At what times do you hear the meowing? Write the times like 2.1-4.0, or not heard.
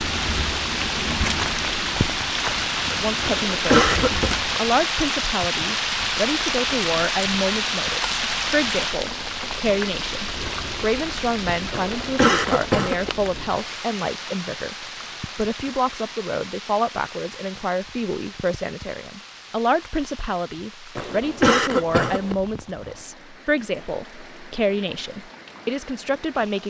not heard.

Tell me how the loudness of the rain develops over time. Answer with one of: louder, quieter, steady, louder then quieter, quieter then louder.
quieter.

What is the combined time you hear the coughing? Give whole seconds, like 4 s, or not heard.
4 s.